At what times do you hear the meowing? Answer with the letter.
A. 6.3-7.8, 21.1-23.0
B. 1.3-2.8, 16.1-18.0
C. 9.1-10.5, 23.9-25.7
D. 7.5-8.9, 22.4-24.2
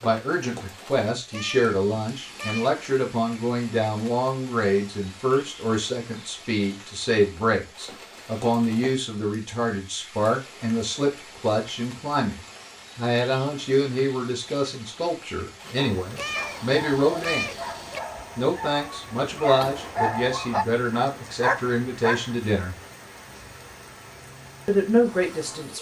B.